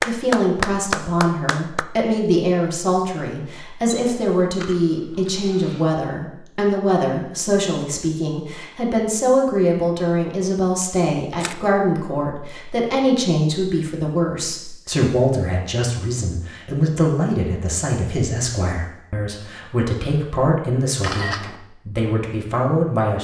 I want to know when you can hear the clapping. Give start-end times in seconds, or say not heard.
0.0-1.9.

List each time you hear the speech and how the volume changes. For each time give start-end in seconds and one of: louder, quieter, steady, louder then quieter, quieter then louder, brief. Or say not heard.
0.0-23.2 steady.